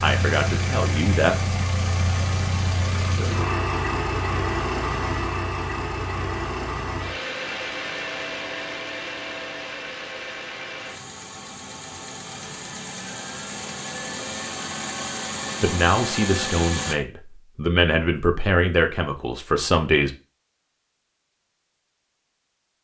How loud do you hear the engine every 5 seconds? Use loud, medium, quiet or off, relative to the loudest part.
loud, loud, medium, loud, off.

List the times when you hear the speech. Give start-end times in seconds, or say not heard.
0.0-1.6, 15.6-20.1.